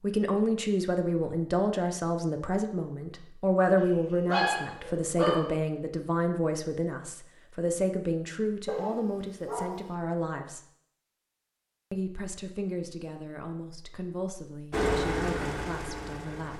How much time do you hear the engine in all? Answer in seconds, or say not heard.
2 s.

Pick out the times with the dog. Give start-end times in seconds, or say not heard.
3.8-5.5, 8.7-9.9.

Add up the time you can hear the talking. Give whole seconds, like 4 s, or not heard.
15 s.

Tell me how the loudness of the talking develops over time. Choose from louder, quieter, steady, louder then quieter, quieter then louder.
quieter.